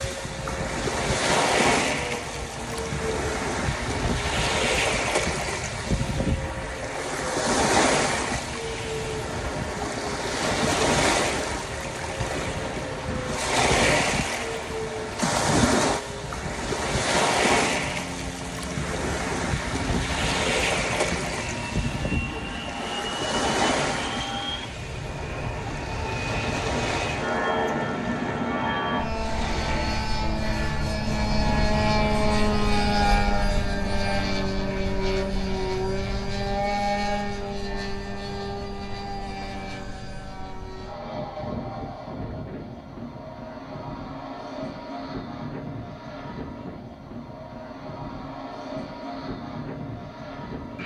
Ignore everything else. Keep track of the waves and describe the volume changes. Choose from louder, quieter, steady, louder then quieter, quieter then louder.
quieter.